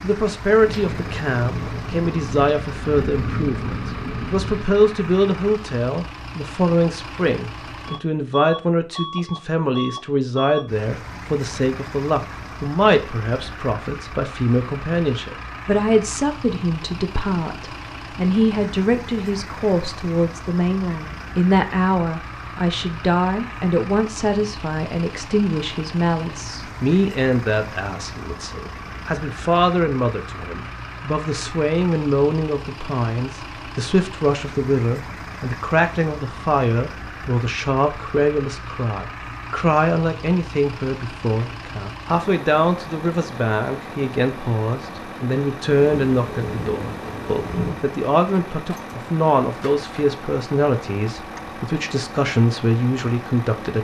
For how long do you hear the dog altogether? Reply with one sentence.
You can't hear the dog here.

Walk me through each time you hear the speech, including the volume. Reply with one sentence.
The speech can be heard from 0.0 to 53.7 s, at a steady volume.